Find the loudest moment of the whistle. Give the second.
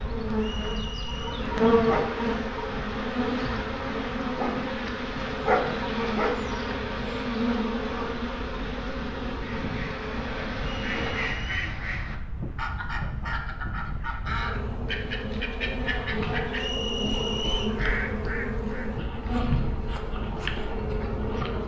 17 s.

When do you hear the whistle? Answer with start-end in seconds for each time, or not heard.
0.3-1.4, 10.6-11.7, 16.6-17.8.